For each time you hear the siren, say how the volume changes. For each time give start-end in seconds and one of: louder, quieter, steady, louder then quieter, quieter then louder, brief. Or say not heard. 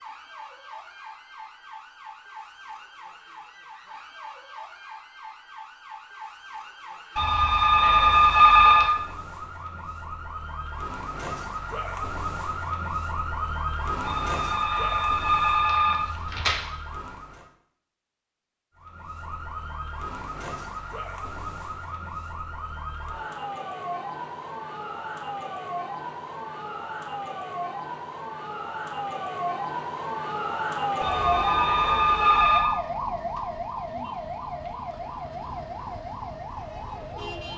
0.0-17.5 louder
18.8-37.5 louder then quieter.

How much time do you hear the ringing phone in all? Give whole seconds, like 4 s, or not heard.
6 s.